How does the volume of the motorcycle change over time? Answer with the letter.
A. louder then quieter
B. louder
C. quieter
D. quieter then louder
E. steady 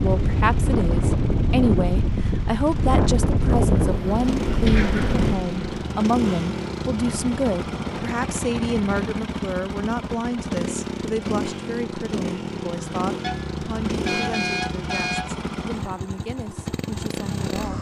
B.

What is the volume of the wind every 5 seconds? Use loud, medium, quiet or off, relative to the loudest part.
loud, medium, off, off.